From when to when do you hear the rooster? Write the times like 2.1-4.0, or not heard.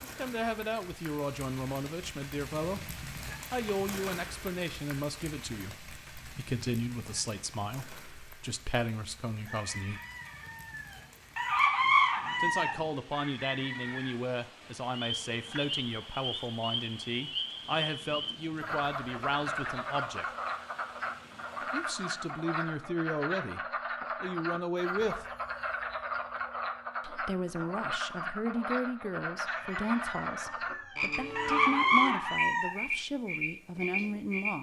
9.4-14.1, 29.4-32.7.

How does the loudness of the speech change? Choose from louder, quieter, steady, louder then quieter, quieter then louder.
steady.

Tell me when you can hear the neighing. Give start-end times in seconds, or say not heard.
not heard.